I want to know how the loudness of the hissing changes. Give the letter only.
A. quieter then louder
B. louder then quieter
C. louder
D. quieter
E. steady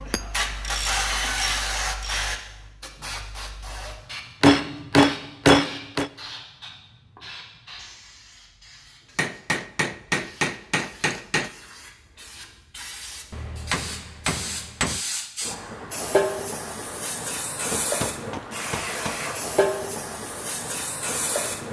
A.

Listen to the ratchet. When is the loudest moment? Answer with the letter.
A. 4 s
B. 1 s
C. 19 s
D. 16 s
B.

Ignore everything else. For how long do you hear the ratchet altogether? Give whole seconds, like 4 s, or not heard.
2 s.